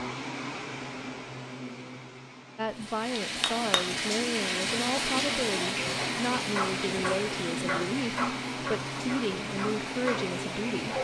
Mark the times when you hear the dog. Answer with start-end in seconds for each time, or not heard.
6.5-10.9.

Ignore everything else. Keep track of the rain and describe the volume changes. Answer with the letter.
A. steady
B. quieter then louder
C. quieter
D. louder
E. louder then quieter
C.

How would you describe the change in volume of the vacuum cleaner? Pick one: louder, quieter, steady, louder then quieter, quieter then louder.
quieter then louder.